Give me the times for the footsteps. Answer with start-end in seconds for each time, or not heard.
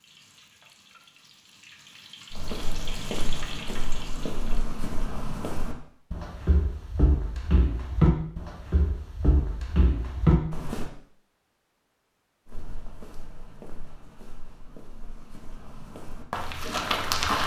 2.3-10.9, 12.4-17.4.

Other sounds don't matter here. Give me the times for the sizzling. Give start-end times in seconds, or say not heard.
0.0-4.7.